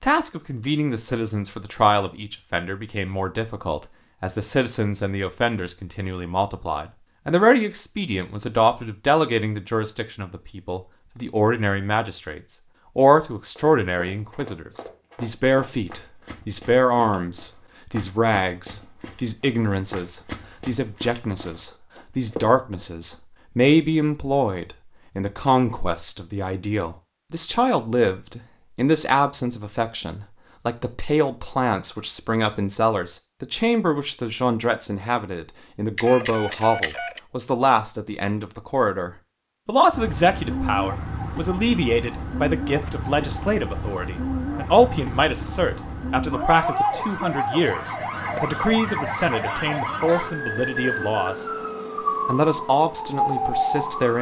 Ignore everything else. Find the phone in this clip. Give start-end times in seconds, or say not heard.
36.0-37.2.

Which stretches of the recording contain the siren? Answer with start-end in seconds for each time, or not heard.
39.9-54.1.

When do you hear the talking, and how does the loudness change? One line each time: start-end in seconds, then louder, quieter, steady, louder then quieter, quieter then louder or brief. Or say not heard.
0.0-51.5 steady
52.2-54.1 brief.